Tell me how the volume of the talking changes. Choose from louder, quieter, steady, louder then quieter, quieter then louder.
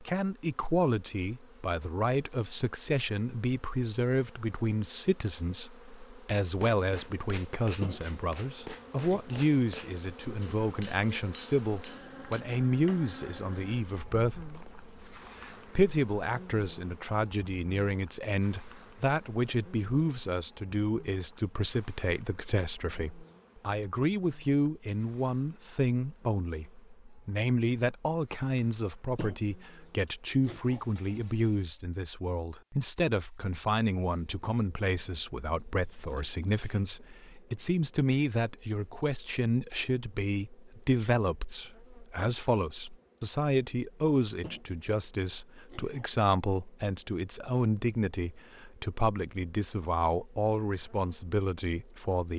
steady.